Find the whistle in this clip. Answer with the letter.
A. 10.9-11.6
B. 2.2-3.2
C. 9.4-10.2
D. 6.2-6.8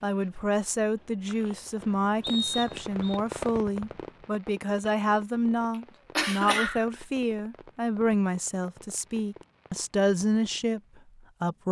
B.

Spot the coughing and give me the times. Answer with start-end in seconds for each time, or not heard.
6.2-6.8.